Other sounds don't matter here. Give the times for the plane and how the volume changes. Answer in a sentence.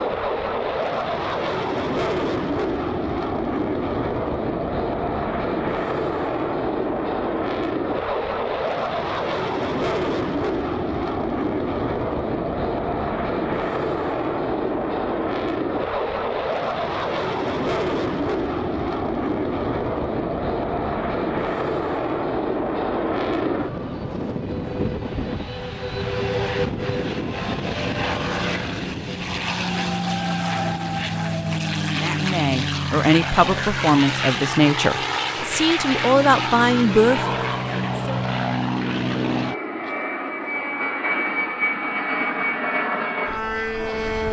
You can hear the plane from 0.0 to 44.2 s, at a steady volume.